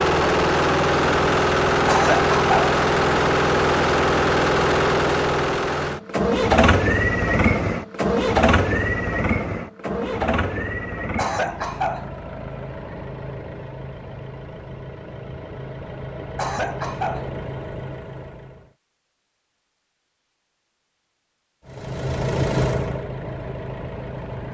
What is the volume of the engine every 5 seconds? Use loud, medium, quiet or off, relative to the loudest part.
loud, loud, quiet, quiet, medium.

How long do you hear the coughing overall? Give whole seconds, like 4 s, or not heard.
3 s.